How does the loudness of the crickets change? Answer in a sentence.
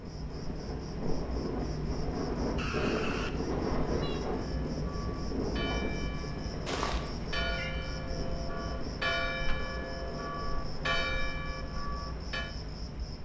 The loudness of the crickets stays about the same.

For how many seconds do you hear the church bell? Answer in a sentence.
The church bell can be heard for 8 seconds in total.